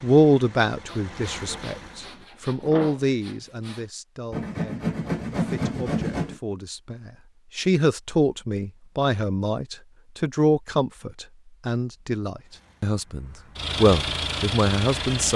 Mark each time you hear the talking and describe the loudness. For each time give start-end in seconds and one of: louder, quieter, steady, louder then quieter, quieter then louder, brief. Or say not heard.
0.0-15.3 quieter then louder.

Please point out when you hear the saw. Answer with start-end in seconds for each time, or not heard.
0.8-6.3.